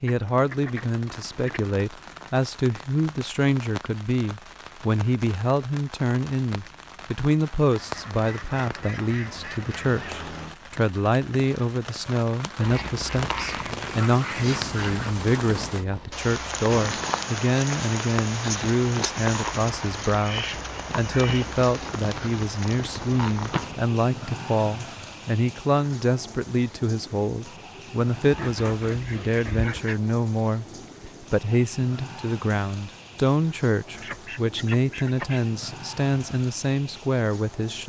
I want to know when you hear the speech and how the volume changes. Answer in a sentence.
You can hear the speech from 0.0 to 37.8 s, at a steady volume.